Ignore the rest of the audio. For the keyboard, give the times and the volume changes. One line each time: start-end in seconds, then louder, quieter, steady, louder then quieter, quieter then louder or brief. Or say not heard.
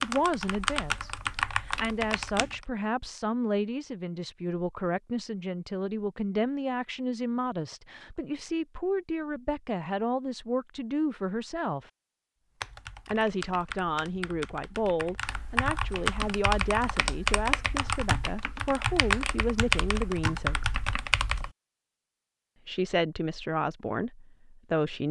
0.0-2.6 brief
12.6-21.5 louder.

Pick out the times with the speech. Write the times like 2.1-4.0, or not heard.
0.0-11.9, 13.1-20.6, 22.6-25.0.